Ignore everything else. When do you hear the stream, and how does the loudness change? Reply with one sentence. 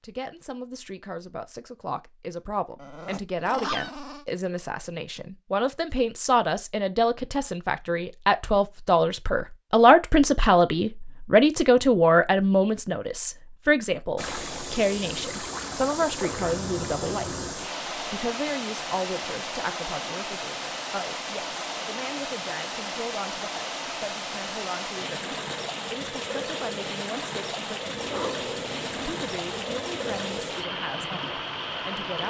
You can hear the stream from 14.2 to 32.2 s, at a steady volume.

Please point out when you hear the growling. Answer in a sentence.
The growling can be heard from 2.8 to 4.2 s, from 16.3 to 17.6 s and from 27.9 to 30.5 s.